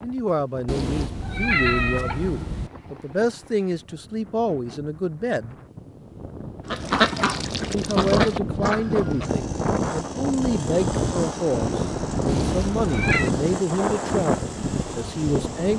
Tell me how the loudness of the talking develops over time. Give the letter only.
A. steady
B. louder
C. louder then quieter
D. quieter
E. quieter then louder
A.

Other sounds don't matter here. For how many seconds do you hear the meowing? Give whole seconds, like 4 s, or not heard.
3 s.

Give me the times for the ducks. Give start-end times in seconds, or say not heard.
6.7-9.3.